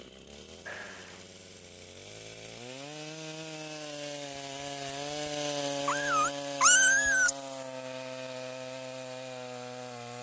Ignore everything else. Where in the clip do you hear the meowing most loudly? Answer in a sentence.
The loudest moment of the meowing is at 7 seconds.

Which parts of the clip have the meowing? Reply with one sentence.
The meowing can be heard from 0.7 to 1.2 s and from 5.8 to 7.3 s.